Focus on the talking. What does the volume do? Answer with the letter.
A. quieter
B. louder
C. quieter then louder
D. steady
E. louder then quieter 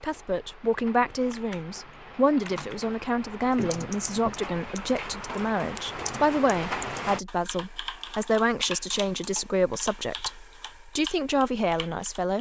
D.